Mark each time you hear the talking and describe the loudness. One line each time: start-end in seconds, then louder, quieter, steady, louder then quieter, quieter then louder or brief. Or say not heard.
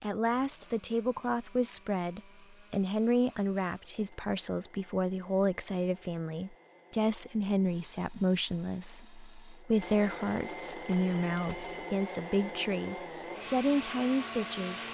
0.0-14.8 steady.